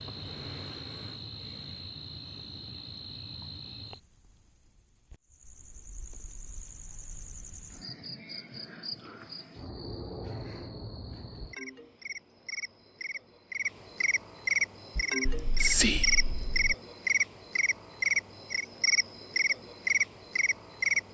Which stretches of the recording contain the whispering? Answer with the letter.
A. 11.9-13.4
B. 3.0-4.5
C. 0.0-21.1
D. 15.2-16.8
D.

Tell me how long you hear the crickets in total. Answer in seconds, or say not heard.
21 s.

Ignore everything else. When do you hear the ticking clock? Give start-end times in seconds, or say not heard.
not heard.